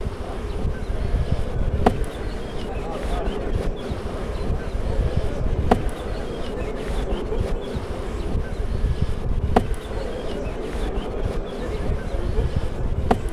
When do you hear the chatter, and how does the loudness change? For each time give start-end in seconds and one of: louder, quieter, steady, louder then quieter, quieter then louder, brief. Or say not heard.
0.1-13.2 steady.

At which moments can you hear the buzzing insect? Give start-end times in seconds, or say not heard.
0.0-13.2.